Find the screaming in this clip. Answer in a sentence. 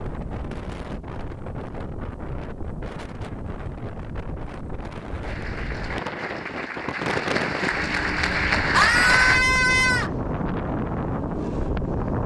You can hear the screaming from 8.7 to 10.1 s.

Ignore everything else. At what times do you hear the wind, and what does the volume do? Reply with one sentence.
You can hear the wind from 0.0 to 12.2 s, getting louder.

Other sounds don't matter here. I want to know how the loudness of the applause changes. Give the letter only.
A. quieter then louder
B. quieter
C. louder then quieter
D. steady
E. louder
E.